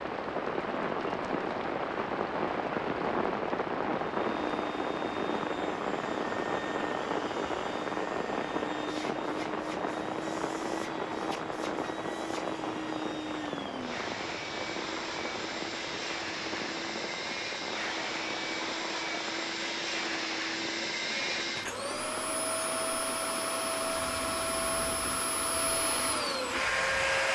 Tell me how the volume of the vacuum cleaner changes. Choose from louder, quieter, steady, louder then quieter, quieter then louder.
louder.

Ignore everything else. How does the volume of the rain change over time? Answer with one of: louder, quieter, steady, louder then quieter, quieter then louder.
quieter.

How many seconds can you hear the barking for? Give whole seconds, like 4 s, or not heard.
not heard.